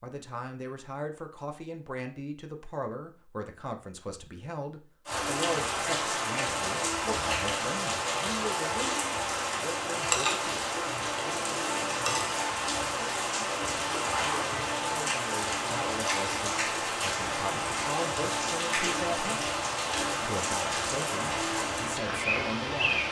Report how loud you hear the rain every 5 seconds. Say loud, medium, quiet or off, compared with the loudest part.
off, loud, loud, loud, loud.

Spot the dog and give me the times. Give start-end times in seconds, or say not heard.
not heard.